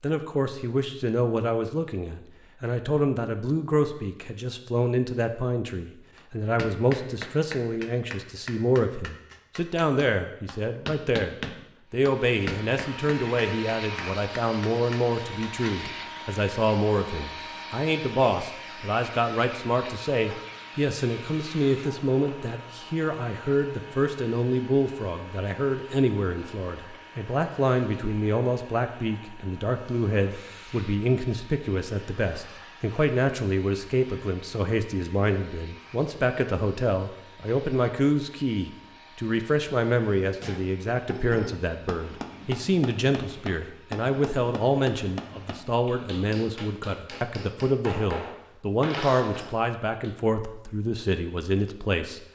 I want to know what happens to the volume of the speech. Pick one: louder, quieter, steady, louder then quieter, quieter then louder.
steady.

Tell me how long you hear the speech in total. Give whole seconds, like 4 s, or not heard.
52 s.